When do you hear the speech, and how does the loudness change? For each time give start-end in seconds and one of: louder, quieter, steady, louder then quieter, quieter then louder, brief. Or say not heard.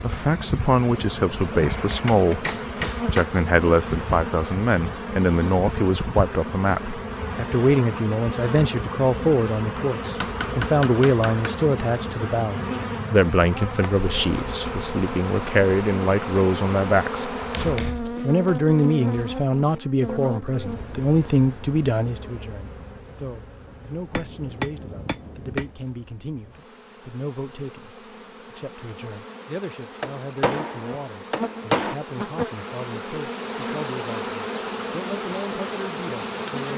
0.0-2.5 brief
3.1-36.7 quieter.